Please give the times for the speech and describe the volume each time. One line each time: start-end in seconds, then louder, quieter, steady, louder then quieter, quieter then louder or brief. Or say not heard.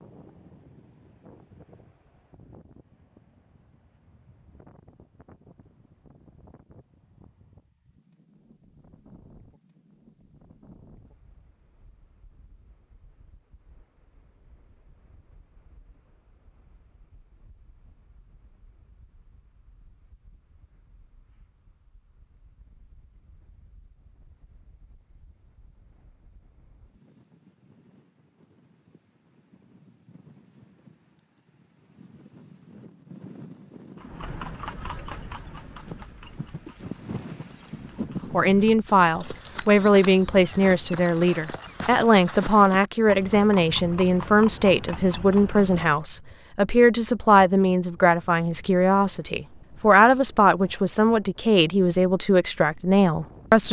38.3-53.6 steady.